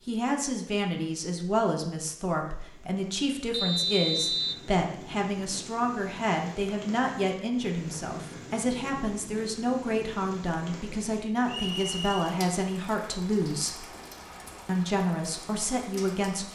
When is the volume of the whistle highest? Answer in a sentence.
The loudest moment of the whistle is at 4 seconds.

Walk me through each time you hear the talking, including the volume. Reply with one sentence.
The talking can be heard from 0.1 to 13.8 s, at a steady volume; and briefly from 14.7 to 16.5 s.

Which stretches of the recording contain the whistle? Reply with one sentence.
You can hear the whistle from 3.5 to 4.7 s and from 11.4 to 12.1 s.